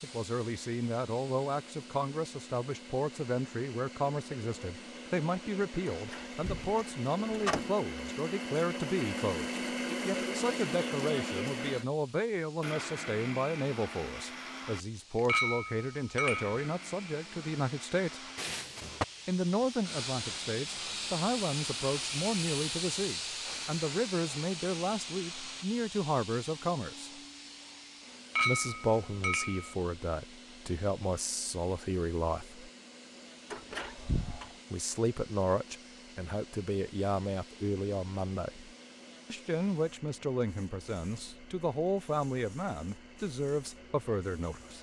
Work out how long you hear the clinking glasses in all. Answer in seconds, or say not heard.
3 s.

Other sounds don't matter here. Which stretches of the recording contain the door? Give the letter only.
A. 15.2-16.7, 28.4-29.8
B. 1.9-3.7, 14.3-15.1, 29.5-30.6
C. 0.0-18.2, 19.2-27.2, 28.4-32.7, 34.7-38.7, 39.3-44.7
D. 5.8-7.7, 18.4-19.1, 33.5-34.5
D.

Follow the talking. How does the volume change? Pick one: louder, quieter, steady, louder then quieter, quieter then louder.
steady.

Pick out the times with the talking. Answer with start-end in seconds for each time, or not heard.
0.0-18.2, 19.2-27.2, 28.4-32.7, 34.7-38.7, 39.3-44.7.